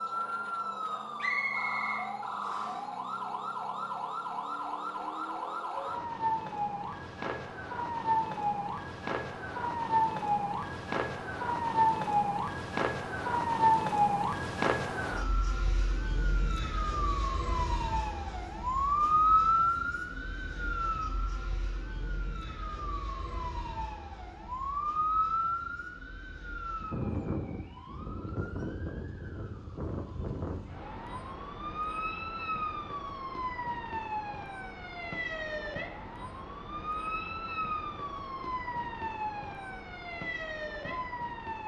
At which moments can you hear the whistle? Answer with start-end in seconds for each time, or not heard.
1.2-2.8.